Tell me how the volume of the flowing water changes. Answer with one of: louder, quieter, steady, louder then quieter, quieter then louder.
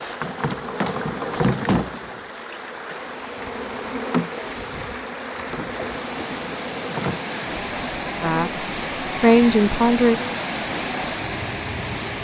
louder.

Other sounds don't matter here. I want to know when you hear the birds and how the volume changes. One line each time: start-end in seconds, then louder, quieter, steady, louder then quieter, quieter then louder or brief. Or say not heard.
not heard.